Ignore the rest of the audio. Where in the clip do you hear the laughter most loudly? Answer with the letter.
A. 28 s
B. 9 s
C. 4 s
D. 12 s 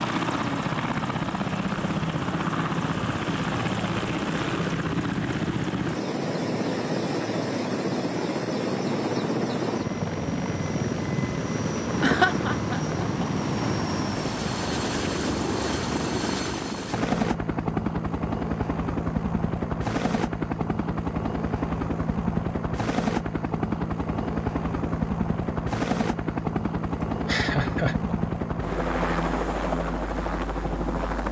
D.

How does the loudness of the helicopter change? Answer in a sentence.
The loudness of the helicopter stays about the same.